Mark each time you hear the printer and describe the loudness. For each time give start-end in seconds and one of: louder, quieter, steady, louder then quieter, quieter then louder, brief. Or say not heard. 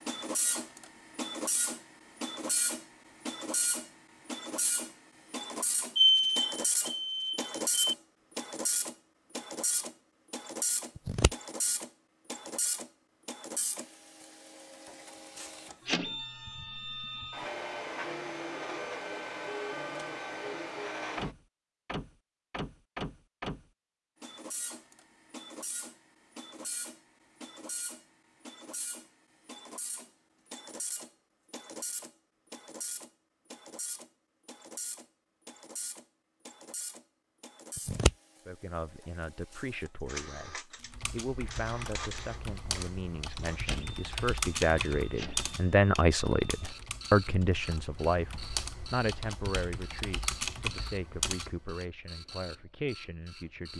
0.1-53.7 quieter.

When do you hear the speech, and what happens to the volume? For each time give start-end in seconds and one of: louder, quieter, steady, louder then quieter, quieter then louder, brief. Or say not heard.
38.5-53.7 louder then quieter.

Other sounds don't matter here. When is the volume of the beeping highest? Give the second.
6 s.